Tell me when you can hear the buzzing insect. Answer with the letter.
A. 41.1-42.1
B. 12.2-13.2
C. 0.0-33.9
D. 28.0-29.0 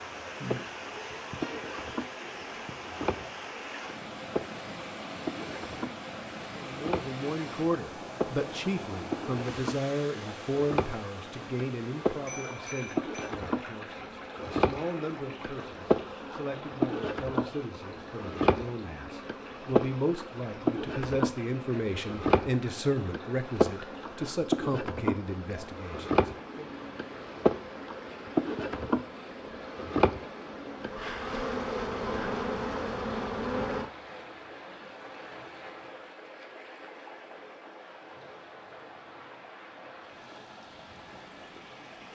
C.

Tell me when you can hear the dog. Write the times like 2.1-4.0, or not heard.
not heard.